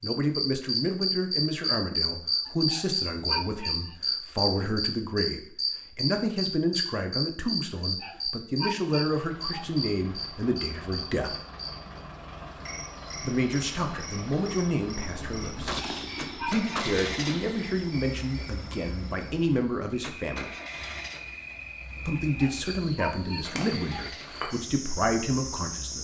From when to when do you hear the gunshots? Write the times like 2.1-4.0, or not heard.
15.7-18.1.